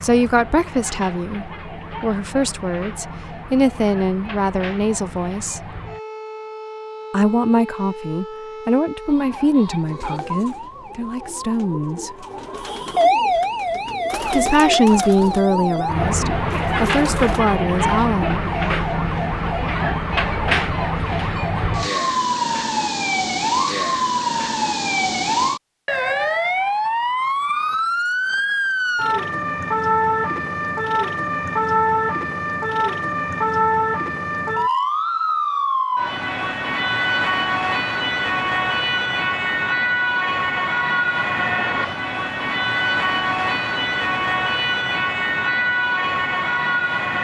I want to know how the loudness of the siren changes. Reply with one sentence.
The volume of the siren goes up.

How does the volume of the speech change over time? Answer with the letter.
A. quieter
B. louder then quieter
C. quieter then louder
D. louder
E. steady
E.